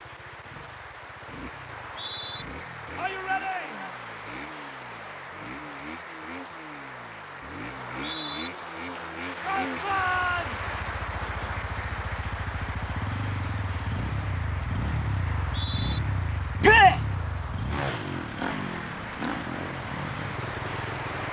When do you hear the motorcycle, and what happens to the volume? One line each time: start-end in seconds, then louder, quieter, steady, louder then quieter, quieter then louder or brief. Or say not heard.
0.0-21.2 louder.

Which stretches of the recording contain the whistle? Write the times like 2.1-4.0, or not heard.
1.6-2.5, 8.0-8.5, 15.3-16.0.